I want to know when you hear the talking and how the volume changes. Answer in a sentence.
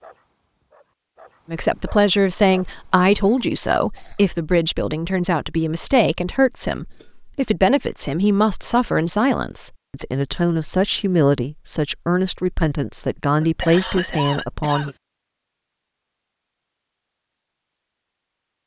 The talking can be heard from 1.4 to 14.9 s, at a steady volume.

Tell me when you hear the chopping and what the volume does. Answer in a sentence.
You can't hear the chopping here.